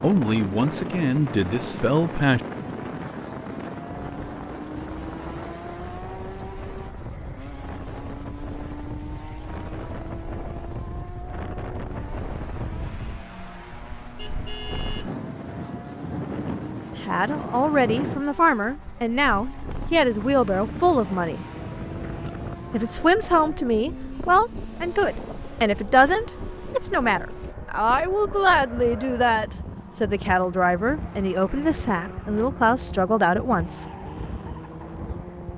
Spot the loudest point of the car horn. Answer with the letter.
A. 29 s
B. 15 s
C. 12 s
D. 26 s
B.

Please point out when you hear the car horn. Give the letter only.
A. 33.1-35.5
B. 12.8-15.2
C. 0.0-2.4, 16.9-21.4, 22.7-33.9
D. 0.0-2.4
B.